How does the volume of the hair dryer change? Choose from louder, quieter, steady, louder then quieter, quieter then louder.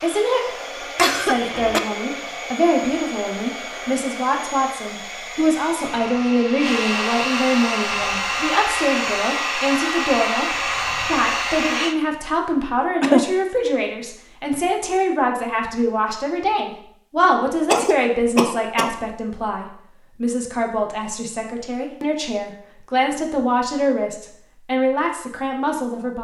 louder.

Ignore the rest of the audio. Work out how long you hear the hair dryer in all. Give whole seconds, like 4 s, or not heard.
12 s.